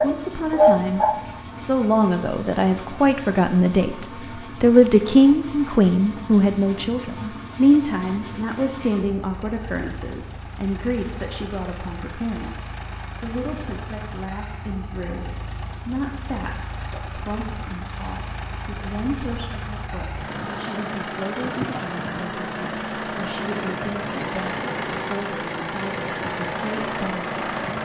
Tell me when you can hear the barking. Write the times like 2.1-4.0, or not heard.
0.0-1.2.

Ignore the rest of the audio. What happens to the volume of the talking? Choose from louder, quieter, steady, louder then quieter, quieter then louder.
quieter.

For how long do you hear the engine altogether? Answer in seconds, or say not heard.
28 s.